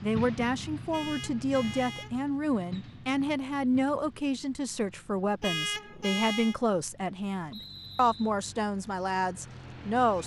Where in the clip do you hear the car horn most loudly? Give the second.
6 s.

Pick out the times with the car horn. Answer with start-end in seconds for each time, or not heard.
0.9-2.2, 5.4-6.5.